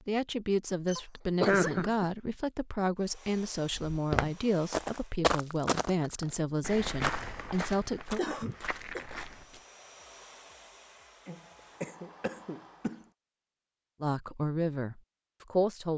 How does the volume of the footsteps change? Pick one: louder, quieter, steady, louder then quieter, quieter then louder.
quieter.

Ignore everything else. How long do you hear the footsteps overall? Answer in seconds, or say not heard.
6 s.